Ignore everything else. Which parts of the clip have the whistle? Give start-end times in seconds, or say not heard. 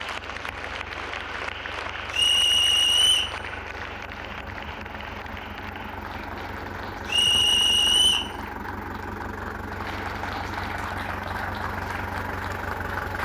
2.1-3.4, 7.0-8.3.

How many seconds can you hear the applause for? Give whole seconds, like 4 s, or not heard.
13 s.